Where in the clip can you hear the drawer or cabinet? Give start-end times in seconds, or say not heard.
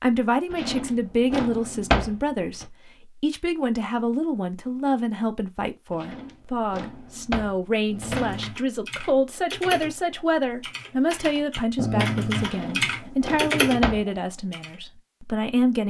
0.5-2.6, 5.9-8.5, 12.4-14.1.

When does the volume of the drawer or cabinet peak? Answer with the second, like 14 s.
2 s.